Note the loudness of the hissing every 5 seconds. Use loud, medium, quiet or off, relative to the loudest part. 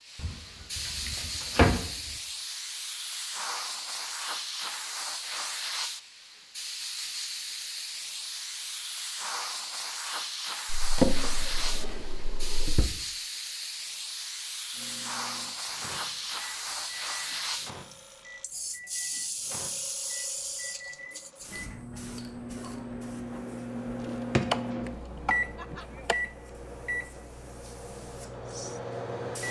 loud, loud, loud, loud, medium, medium.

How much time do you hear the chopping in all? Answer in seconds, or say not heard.
2 s.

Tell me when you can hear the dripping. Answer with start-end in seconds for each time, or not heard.
not heard.